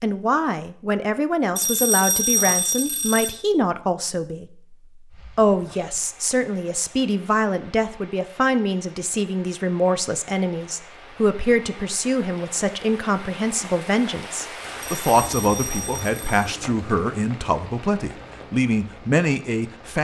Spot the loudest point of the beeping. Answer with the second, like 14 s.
2 s.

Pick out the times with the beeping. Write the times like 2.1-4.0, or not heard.
1.6-3.4, 14.8-16.4.